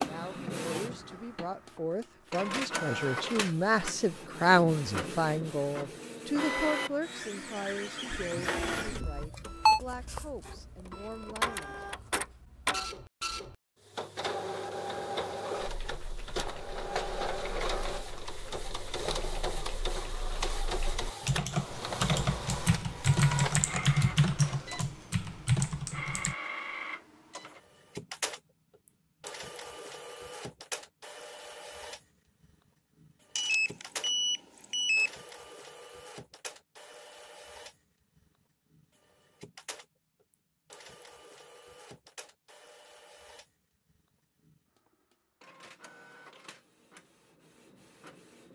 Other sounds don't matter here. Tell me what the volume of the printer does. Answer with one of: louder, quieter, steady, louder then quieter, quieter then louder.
quieter.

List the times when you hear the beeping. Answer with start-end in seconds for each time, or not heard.
8.2-9.8, 33.4-35.1.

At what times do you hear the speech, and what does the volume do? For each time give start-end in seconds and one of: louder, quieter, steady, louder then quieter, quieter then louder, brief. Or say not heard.
0.0-11.8 louder then quieter.